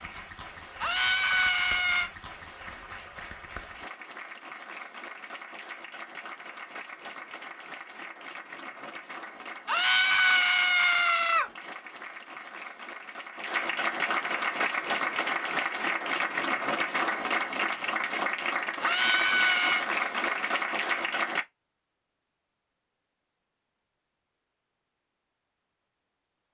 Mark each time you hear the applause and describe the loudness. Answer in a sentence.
You can hear the applause from 0.0 to 21.4 s, getting louder.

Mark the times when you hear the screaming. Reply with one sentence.
You can hear the screaming from 0.8 to 2.1 s, from 9.7 to 11.5 s and from 18.8 to 19.9 s.